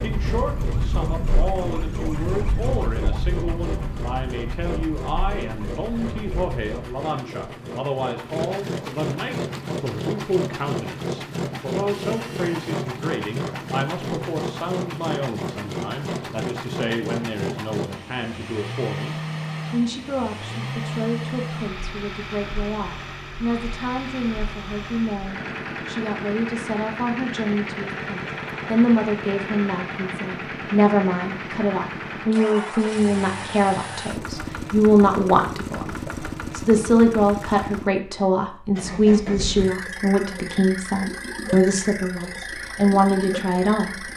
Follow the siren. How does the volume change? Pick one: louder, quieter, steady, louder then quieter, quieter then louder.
quieter.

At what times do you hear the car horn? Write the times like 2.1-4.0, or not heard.
not heard.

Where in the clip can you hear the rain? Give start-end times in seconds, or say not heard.
not heard.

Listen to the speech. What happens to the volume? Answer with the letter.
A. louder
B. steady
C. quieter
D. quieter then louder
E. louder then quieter
A.